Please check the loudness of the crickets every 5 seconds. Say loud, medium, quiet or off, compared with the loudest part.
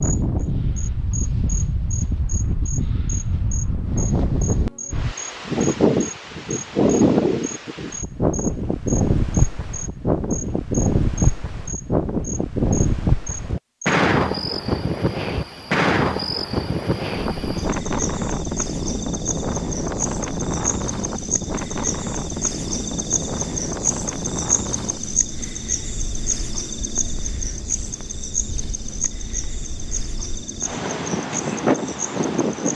medium, medium, medium, medium, loud, loud, medium.